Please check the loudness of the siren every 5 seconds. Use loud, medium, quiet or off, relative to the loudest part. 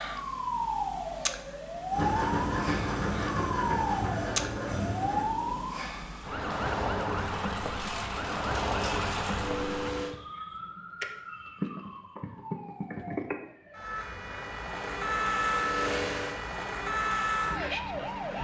loud, loud, medium, loud.